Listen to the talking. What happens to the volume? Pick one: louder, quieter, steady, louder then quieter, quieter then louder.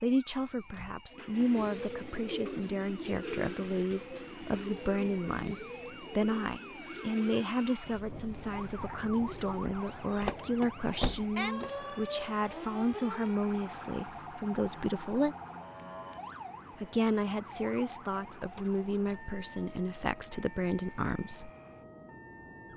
steady.